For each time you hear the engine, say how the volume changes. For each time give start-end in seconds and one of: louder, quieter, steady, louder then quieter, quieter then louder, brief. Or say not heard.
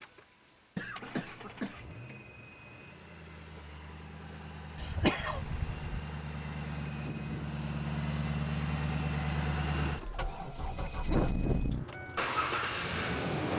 0.0-13.5 louder.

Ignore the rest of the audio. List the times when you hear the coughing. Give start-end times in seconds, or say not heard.
0.8-2.0, 4.8-6.0, 11.1-11.7.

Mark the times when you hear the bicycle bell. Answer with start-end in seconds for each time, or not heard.
1.9-2.9, 6.7-7.2, 10.7-11.7.